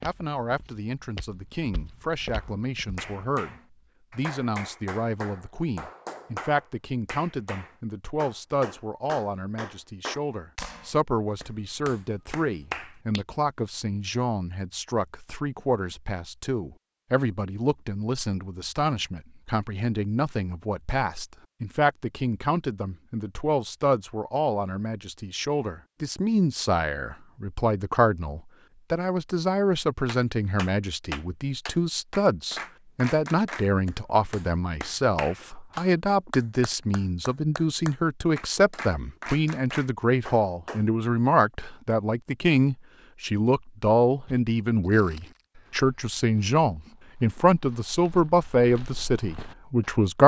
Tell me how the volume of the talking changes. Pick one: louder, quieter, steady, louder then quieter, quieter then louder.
louder.